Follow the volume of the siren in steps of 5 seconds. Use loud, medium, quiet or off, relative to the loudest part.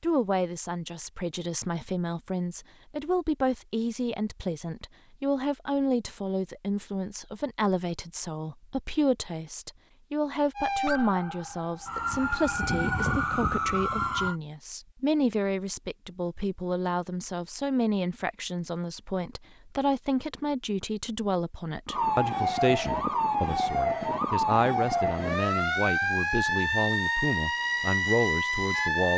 off, off, loud, off, loud, loud.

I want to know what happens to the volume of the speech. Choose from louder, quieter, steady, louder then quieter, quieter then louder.
steady.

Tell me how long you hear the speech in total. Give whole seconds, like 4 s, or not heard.
29 s.